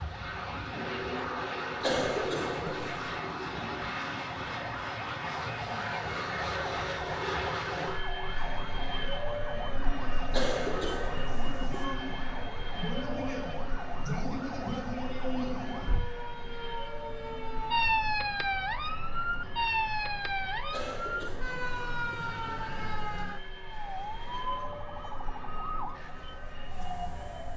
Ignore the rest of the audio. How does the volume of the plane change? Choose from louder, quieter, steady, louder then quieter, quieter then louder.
quieter.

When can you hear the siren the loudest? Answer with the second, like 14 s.
18 s.